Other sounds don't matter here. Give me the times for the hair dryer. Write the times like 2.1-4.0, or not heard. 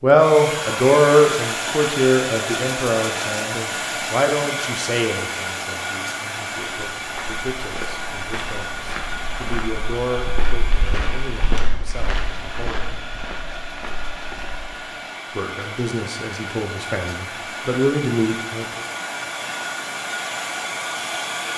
0.0-21.5.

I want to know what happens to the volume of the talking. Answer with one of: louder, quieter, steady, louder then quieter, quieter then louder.
quieter then louder.